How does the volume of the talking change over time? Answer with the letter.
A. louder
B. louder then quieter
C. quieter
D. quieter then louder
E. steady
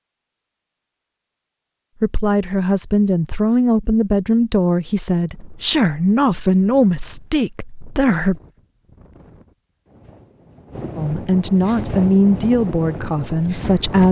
E.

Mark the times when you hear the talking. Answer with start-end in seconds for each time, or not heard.
2.0-8.4, 10.9-14.0.